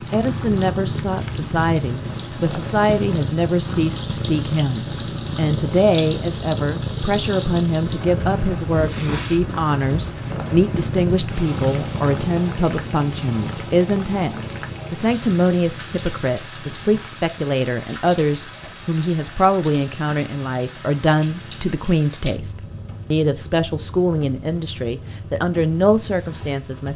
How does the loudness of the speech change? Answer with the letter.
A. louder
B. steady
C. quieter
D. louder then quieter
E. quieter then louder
B.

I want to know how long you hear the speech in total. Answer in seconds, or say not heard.
27 s.